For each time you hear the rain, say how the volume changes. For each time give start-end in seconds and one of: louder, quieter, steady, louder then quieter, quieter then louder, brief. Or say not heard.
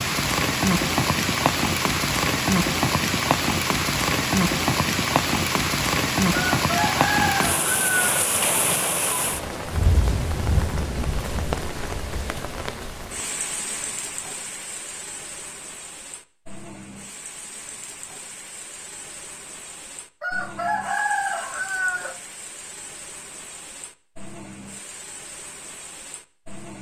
0.0-26.7 quieter.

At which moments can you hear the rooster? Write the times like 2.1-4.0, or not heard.
6.5-8.1, 20.2-22.1.